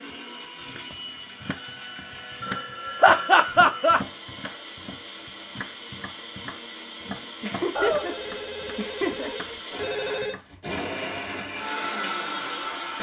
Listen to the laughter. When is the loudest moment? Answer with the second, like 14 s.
3 s.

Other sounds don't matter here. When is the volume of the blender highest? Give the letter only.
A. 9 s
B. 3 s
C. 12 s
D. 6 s
C.